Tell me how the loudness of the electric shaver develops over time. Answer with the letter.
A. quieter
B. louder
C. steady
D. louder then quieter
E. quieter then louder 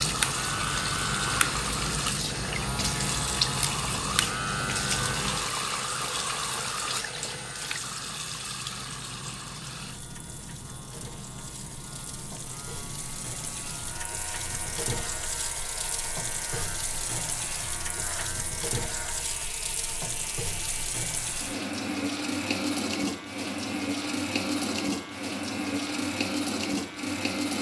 A.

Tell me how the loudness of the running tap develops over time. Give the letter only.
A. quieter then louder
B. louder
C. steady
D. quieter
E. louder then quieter
A.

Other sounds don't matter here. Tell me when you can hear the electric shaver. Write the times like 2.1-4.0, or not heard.
0.0-27.5.